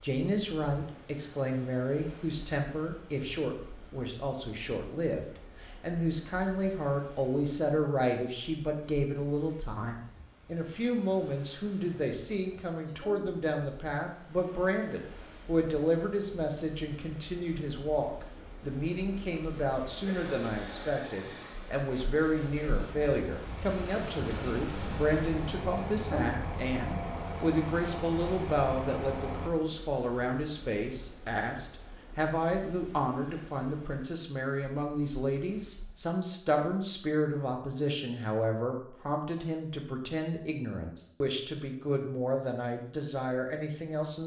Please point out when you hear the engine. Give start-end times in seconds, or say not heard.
20.0-29.5.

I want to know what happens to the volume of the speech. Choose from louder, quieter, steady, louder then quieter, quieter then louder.
steady.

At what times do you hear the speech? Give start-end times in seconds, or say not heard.
0.0-44.2.